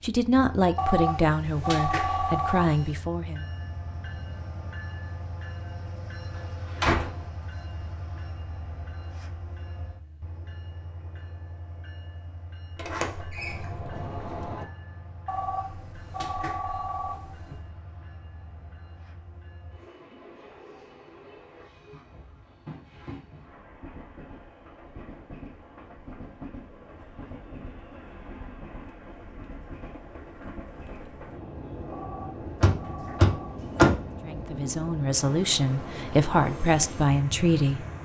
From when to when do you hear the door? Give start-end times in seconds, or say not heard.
6.3-7.2, 12.8-14.7, 32.6-34.0.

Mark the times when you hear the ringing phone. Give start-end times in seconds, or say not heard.
0.8-3.0, 15.2-17.6, 31.9-33.6.